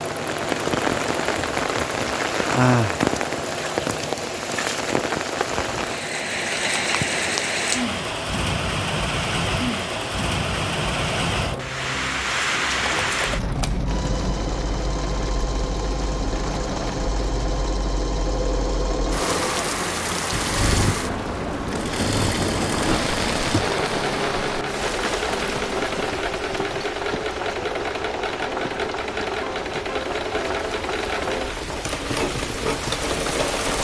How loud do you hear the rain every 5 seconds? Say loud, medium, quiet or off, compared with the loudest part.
loud, loud, loud, medium, loud, medium, medium.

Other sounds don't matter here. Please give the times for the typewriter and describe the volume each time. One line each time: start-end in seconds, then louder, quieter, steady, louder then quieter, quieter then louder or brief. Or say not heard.
not heard.